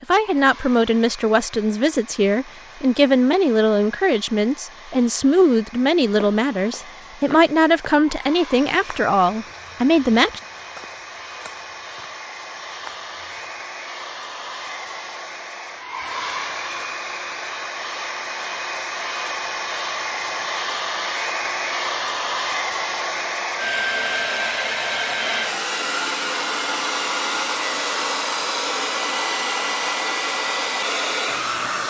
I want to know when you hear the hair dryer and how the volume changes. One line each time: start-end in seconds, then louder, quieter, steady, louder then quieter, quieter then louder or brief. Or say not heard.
0.0-31.8 louder.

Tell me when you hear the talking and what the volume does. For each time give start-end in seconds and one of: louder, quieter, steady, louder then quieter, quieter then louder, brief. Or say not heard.
0.0-10.4 steady.